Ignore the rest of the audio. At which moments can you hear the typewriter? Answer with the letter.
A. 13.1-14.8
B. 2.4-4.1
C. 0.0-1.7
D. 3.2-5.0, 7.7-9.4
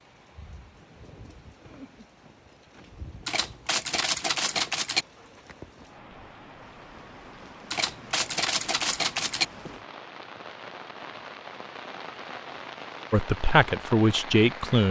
D.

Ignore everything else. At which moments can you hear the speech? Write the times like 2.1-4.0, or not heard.
13.1-14.8.